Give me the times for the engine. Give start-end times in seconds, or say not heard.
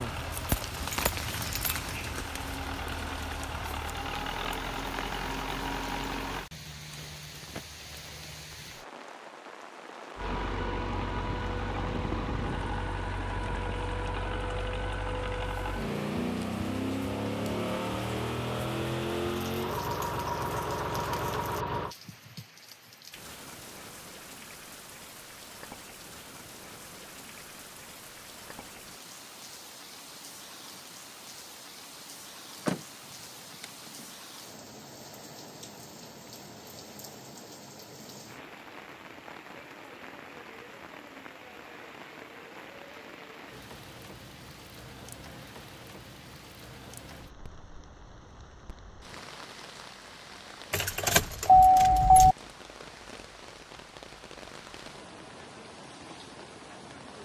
0.0-6.5, 10.2-21.9.